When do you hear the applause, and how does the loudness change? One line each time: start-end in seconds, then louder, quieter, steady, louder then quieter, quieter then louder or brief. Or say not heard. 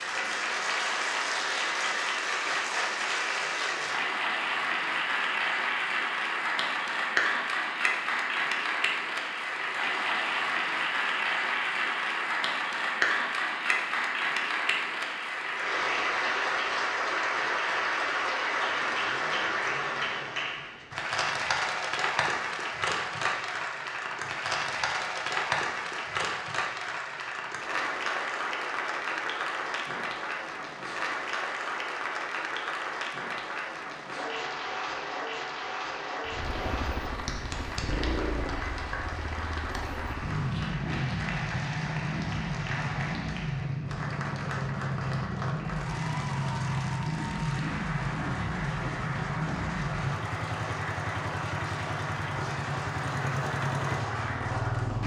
0.0-55.0 quieter.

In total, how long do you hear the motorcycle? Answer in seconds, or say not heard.
19 s.